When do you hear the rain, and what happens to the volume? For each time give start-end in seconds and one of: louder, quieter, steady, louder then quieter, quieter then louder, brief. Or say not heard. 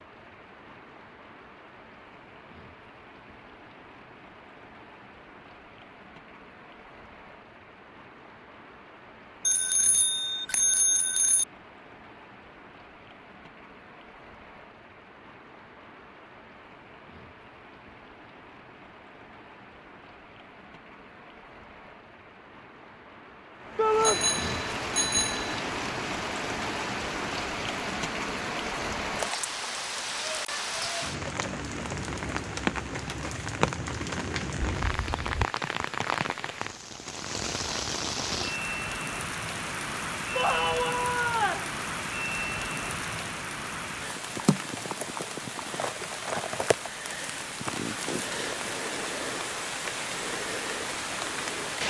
0.0-51.8 louder.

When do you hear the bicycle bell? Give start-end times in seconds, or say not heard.
9.4-11.4, 24.0-25.6, 34.6-35.5.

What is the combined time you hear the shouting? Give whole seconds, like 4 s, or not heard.
2 s.